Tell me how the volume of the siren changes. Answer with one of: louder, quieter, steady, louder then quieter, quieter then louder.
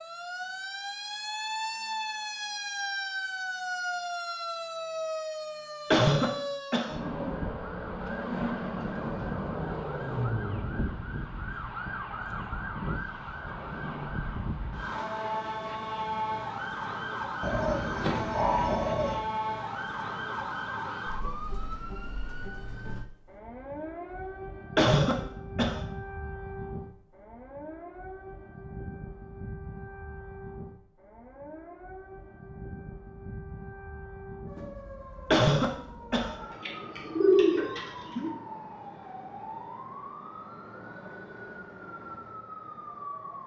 quieter.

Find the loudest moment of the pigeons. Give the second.
37 s.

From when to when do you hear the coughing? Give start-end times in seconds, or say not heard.
5.9-7.0, 24.8-25.8, 35.3-36.4.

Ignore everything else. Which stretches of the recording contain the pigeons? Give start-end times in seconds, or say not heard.
17.4-19.1, 36.4-38.3.